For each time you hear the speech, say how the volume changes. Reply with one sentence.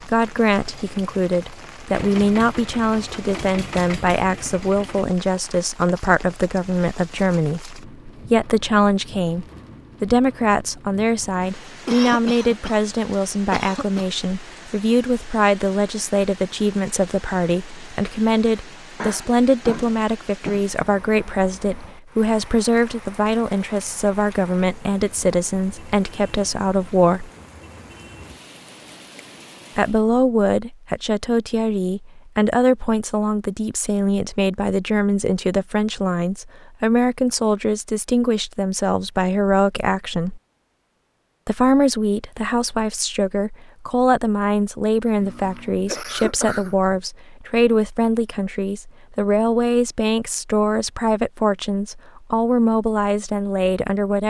You can hear the speech from 0.1 to 27.3 s, at a steady volume; from 29.8 to 40.4 s, at a steady volume; and from 41.5 to 54.2 s, at a steady volume.